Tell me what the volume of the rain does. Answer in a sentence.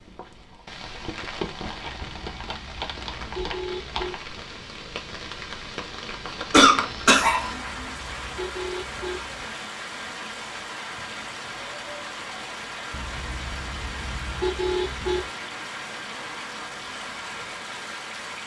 The loudness of the rain stays about the same.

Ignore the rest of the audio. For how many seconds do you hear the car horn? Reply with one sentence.
The car horn can be heard for 7 seconds in total.